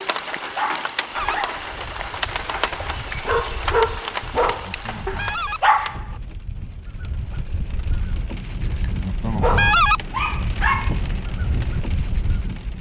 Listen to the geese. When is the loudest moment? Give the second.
10 s.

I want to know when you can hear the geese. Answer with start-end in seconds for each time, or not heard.
1.1-12.5.